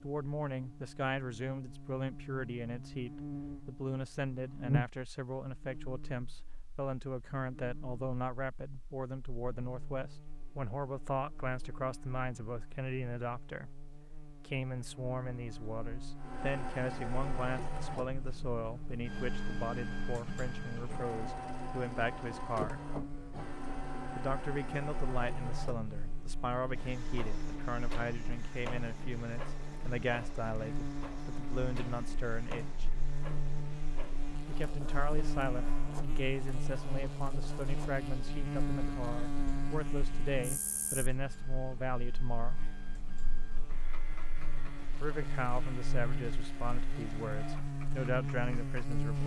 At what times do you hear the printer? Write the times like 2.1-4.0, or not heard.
16.1-49.2.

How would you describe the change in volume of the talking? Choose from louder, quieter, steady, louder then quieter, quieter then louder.
steady.